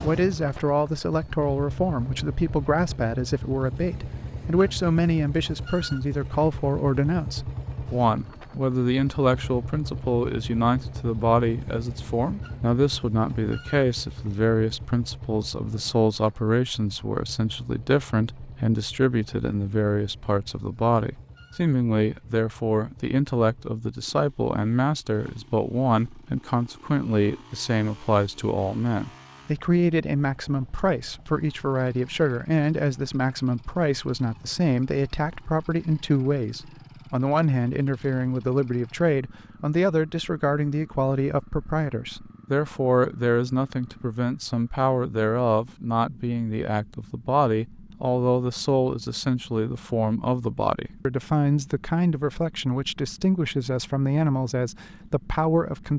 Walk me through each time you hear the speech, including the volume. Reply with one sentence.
You can hear the speech from 0.0 to 55.9 s, at a steady volume.